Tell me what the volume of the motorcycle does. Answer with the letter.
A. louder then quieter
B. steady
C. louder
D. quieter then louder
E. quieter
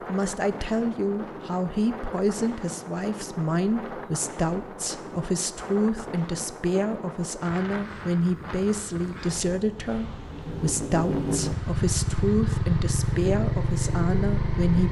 B.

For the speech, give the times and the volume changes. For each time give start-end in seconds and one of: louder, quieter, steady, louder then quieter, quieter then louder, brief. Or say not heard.
0.1-14.8 steady.